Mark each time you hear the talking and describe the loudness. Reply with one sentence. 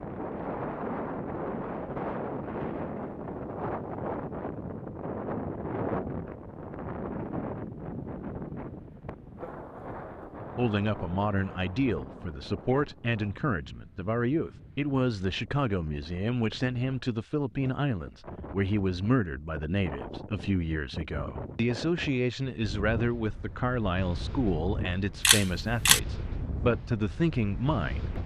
You can hear the talking from 10.6 to 28.1 s, at a steady volume.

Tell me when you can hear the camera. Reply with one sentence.
You can hear the camera from 25.2 to 26.0 s.